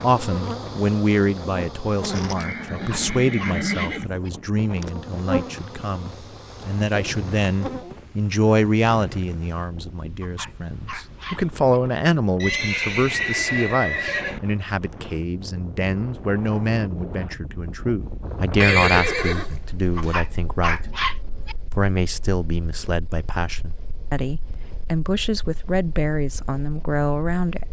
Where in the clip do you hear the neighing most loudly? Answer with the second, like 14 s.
19 s.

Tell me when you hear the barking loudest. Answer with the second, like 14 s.
21 s.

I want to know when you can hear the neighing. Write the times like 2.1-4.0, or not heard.
2.4-4.2, 12.4-14.4, 18.6-20.1.